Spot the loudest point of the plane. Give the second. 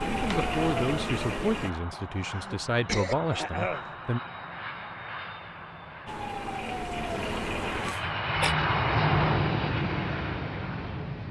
9 s.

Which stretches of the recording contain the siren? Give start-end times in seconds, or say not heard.
0.0-1.7, 6.0-8.0.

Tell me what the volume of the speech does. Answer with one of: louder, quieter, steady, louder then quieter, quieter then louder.
quieter then louder.